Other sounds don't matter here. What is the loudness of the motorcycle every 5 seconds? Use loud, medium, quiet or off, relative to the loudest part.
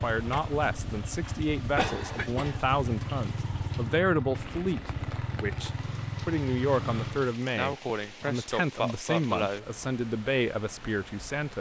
loud, loud, off.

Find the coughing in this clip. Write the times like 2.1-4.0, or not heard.
1.2-2.6, 7.5-9.7.